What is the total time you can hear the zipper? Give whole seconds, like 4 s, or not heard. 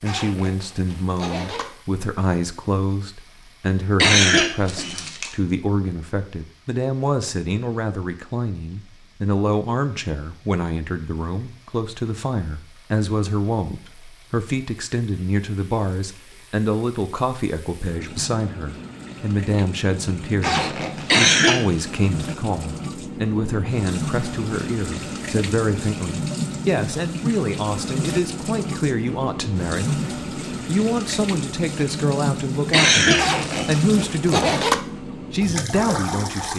4 s.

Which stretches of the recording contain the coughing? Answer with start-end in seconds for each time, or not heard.
4.0-5.3, 21.1-21.8, 32.7-33.9.